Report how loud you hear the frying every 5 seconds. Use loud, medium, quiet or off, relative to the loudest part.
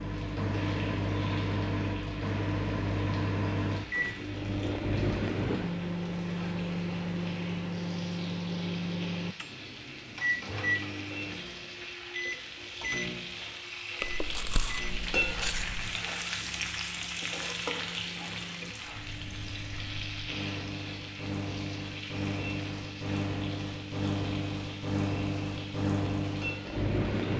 medium, medium, medium, loud, medium, medium.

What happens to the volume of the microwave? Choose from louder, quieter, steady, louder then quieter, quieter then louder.
quieter then louder.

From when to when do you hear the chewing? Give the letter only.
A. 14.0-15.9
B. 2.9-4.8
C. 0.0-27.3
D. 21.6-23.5
A.